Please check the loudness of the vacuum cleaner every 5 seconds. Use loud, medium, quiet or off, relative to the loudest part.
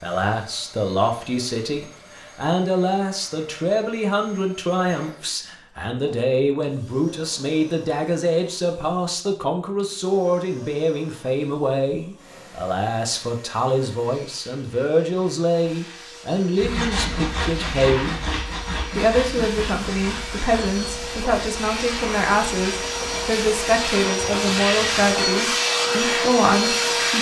quiet, quiet, quiet, quiet, medium, loud.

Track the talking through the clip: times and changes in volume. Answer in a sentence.
The talking can be heard from 0.0 to 27.1 s, at a steady volume.